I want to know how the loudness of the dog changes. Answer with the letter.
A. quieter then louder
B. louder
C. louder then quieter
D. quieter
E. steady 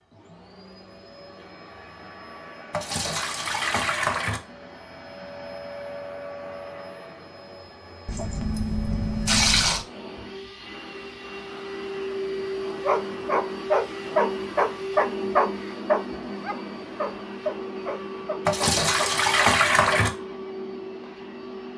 D.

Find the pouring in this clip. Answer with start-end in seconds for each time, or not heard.
2.7-4.4, 8.1-9.8, 18.4-20.1.